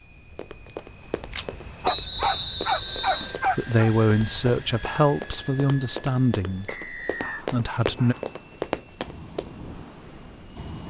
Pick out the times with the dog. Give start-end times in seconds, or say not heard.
1.3-3.8, 6.7-8.3.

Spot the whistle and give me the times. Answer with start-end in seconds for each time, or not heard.
1.9-3.4, 6.7-7.5.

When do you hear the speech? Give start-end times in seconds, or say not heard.
3.5-6.8, 7.5-8.2.